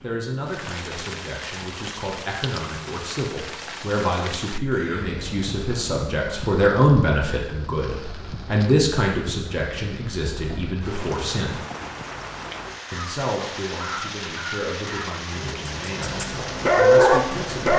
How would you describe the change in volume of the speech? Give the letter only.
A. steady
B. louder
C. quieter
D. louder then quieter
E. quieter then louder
D.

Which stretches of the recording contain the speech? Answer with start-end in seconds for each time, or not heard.
0.0-11.7, 12.9-17.7.